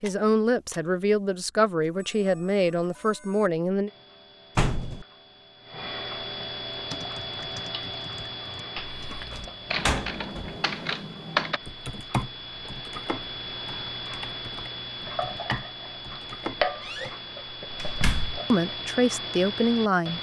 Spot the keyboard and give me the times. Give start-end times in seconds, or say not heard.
6.7-17.1.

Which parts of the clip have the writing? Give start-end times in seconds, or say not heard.
not heard.